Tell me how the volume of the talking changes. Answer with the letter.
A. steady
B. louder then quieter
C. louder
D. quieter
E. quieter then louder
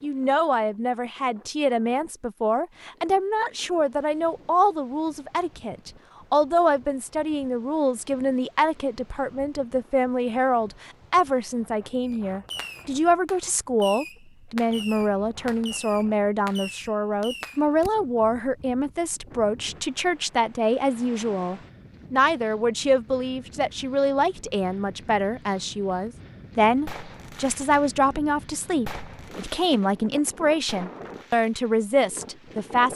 A.